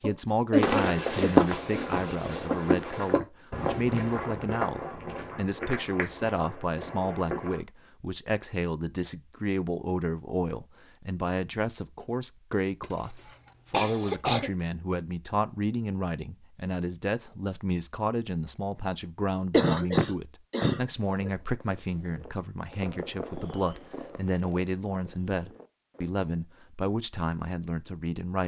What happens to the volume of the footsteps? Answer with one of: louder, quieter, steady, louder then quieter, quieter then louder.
quieter.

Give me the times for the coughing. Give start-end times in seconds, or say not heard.
0.0-1.4, 12.8-14.5, 19.5-21.3.